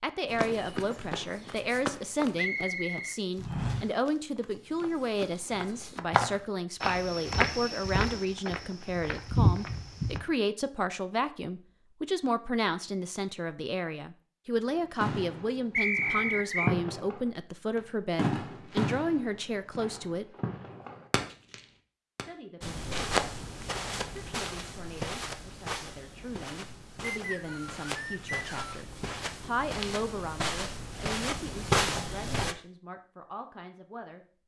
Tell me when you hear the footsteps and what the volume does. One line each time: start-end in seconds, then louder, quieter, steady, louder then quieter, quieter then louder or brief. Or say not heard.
0.2-10.2 quieter then louder
22.6-32.5 quieter then louder.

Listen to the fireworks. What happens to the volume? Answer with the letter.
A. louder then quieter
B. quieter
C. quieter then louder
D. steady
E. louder
A.